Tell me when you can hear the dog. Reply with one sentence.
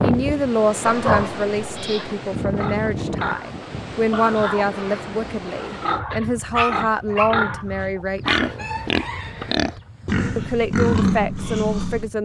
You can hear the dog from 0.8 to 2.1 s and from 6.5 to 8.6 s.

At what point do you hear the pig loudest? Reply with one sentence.
The loudest moment of the pig is at 11 seconds.